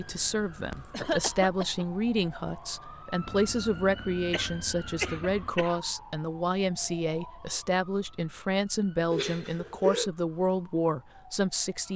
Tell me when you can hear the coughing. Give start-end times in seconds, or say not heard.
0.7-1.9, 4.3-5.8, 9.1-10.1.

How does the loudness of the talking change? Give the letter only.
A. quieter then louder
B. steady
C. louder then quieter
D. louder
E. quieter
B.